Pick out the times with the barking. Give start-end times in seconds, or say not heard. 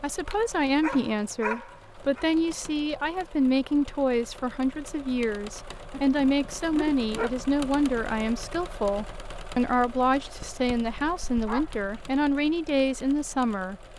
0.2-2.2, 5.9-7.4, 10.4-12.2.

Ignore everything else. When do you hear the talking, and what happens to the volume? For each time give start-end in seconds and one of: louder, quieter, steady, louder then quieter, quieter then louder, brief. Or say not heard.
0.0-13.8 steady.